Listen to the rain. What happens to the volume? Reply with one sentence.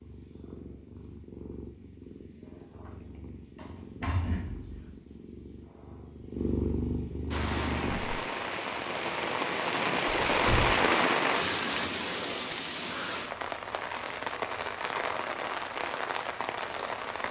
The volume of the rain goes up, then down.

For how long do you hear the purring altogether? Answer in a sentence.
The purring can be heard for 8 seconds in total.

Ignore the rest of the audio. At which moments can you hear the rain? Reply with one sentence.
You can hear the rain from 7.3 to 17.2 s.